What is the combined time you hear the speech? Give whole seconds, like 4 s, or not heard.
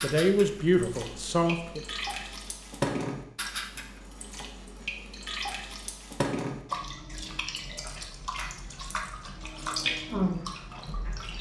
2 s.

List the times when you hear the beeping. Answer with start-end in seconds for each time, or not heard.
not heard.